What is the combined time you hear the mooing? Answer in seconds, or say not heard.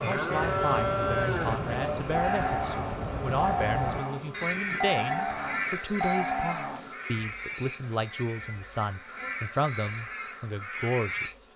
7 s.